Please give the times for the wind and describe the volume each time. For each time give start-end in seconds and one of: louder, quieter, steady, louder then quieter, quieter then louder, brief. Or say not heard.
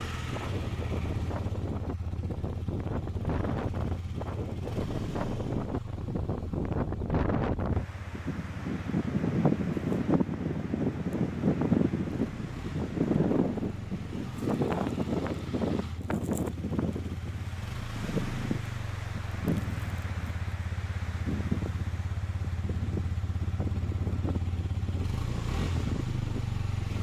0.0-26.9 louder then quieter.